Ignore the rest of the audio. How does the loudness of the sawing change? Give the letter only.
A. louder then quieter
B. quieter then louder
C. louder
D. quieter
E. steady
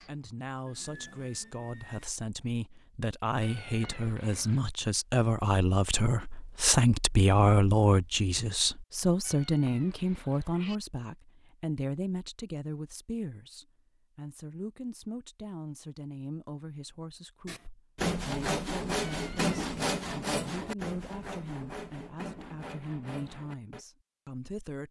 D.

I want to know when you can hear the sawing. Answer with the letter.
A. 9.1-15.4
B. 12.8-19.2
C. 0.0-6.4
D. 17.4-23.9
D.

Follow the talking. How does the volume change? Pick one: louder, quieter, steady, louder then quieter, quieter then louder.
louder then quieter.